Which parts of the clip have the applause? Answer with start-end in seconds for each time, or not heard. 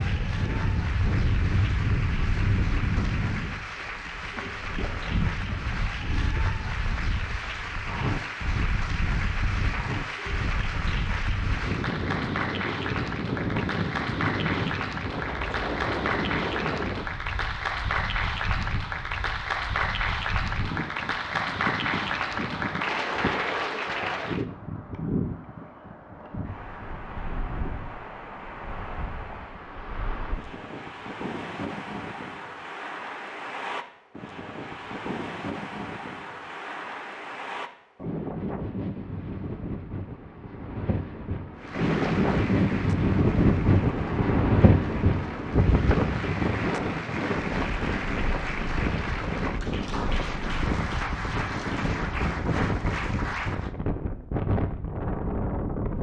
0.0-24.4, 41.5-53.7.